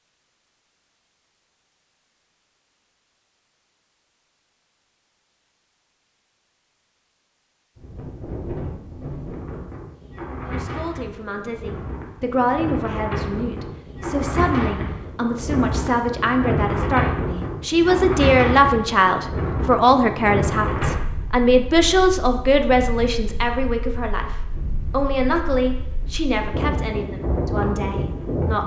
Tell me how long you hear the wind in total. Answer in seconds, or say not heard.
21 s.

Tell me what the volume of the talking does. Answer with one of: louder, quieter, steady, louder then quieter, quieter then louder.
louder then quieter.